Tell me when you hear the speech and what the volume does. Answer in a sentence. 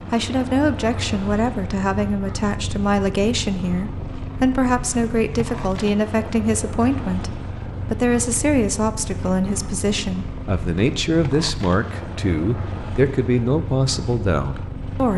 You can hear the speech from 0.1 to 15.1 s, at a steady volume.